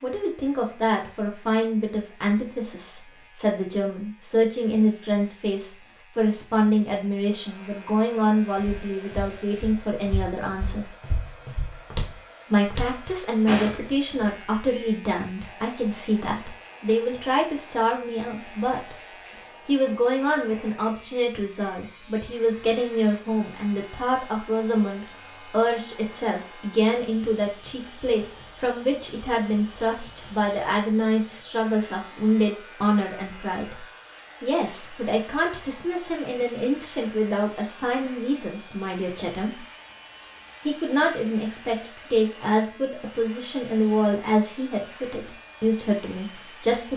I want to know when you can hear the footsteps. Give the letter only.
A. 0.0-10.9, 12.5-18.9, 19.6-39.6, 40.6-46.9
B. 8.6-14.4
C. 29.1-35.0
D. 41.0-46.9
B.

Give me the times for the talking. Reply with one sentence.
You can hear the talking from 0.0 to 10.9 s, from 12.5 to 18.9 s, from 19.6 to 39.6 s and from 40.6 to 46.9 s.